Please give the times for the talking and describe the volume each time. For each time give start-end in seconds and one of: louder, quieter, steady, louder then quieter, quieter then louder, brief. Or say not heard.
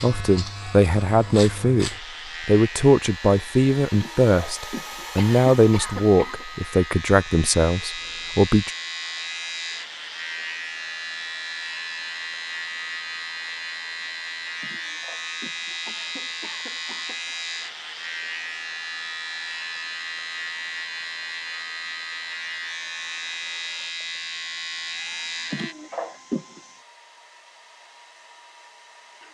0.0-8.7 steady.